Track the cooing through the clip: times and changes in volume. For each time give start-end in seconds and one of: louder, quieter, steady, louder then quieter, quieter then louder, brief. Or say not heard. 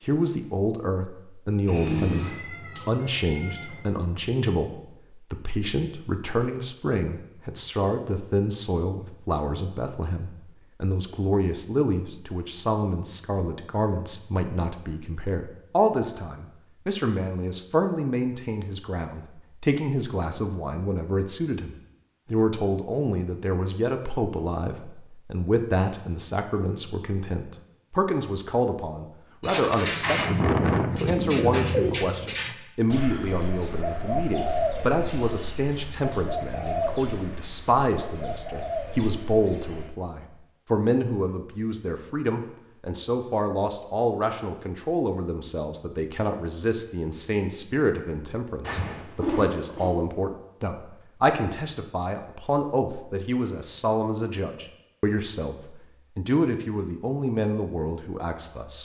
29.4-39.9 quieter.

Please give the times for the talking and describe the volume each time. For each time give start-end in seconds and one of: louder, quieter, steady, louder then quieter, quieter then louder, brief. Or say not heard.
0.0-58.8 steady.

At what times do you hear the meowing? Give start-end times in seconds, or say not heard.
1.6-3.8, 48.6-49.9.